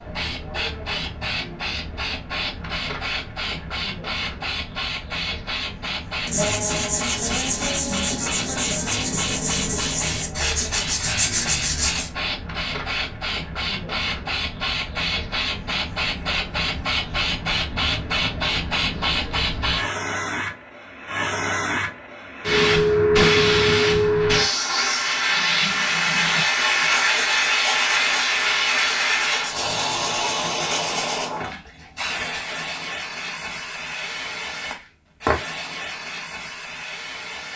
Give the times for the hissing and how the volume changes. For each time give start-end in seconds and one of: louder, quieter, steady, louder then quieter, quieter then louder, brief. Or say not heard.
0.0-37.5 louder then quieter.